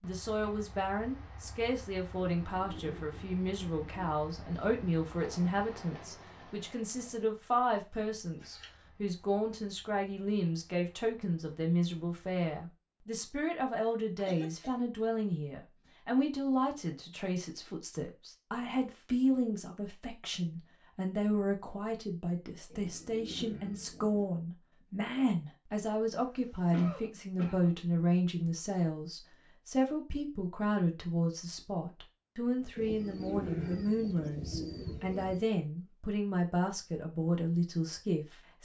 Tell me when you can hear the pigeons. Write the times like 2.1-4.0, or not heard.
2.4-4.2, 22.7-24.3, 32.8-35.5.